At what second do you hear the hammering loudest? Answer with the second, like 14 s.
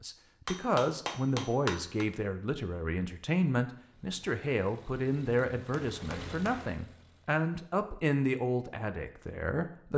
2 s.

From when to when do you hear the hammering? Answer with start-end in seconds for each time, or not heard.
0.5-2.0, 5.6-6.8.